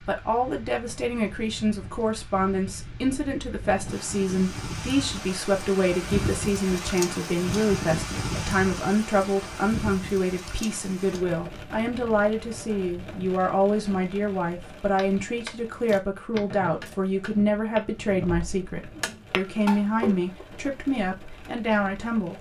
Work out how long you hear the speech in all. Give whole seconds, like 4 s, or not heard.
22 s.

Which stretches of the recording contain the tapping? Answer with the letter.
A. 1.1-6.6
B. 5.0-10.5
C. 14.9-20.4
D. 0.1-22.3
C.